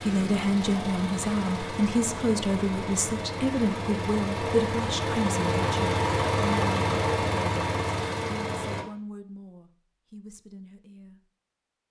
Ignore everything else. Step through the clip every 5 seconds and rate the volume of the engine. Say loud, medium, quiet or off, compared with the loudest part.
medium, loud, off.